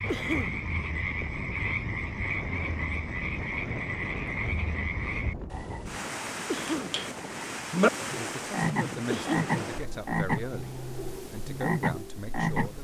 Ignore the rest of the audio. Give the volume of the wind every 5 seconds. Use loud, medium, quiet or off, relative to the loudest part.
loud, loud, medium.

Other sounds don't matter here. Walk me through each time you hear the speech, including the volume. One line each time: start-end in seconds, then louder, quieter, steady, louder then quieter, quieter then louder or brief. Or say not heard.
8.0-12.8 quieter then louder.